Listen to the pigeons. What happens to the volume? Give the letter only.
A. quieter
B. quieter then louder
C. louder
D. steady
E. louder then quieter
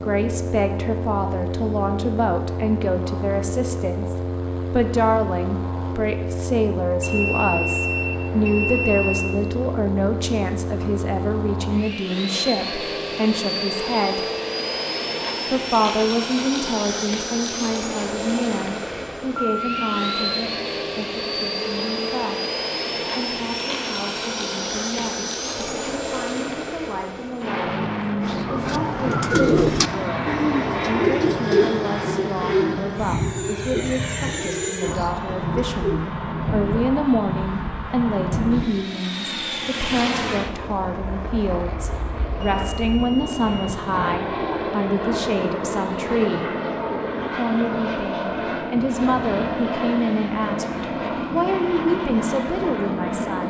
A.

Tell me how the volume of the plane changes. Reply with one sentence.
The volume of the plane stays about the same.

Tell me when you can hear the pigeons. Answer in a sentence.
You can hear the pigeons from 28.2 to 36.1 s.